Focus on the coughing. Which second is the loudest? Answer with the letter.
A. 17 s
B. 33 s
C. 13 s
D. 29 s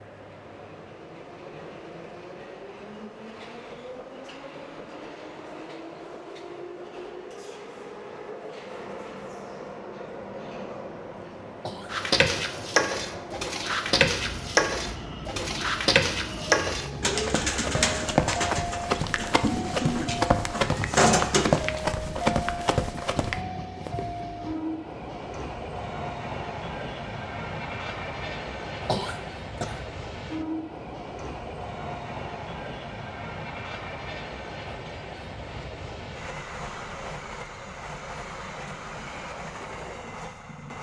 D.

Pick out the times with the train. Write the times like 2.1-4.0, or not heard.
0.0-40.7.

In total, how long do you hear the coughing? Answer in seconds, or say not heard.
2 s.